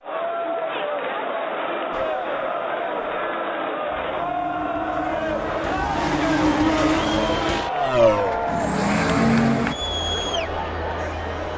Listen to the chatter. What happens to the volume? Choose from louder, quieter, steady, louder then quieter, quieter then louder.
steady.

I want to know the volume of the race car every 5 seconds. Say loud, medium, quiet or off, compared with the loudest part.
quiet, loud, off.